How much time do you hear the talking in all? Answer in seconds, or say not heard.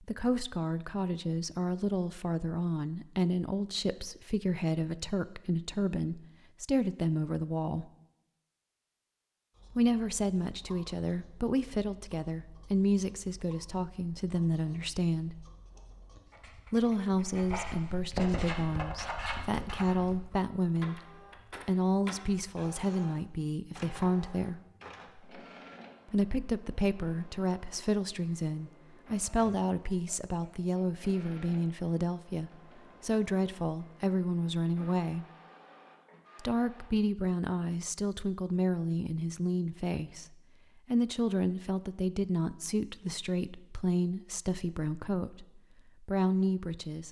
41 s.